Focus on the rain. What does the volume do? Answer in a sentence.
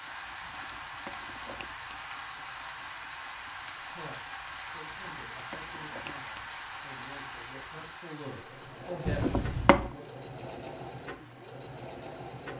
The loudness of the rain goes down.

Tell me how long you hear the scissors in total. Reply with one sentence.
You can hear the scissors for 4 seconds altogether.